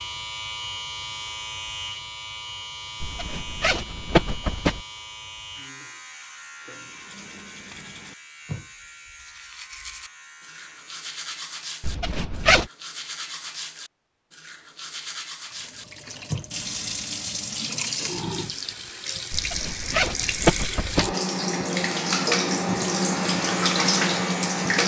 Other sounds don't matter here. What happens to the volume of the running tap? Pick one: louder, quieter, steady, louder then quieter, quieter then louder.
louder.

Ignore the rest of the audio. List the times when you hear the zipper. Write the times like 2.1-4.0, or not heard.
3.0-4.8, 11.8-12.7, 19.3-21.1.